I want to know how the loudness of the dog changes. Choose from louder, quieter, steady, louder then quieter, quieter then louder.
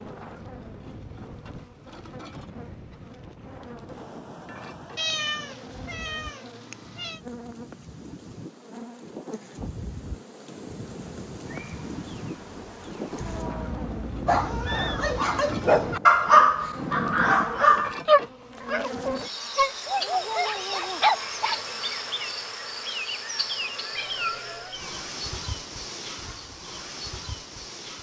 louder then quieter.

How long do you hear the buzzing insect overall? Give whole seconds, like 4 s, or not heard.
28 s.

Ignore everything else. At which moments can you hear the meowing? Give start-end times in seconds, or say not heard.
5.0-7.2, 13.2-15.2, 23.9-25.0.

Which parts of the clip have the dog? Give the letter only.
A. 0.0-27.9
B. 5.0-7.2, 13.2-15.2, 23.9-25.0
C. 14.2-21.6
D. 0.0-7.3
C.